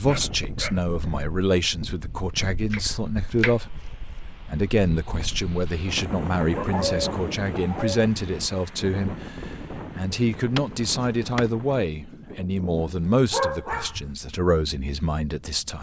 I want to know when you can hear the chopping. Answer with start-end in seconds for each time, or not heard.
2.7-4.1, 10.6-11.5.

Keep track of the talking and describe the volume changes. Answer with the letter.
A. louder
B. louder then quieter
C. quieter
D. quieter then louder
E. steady
E.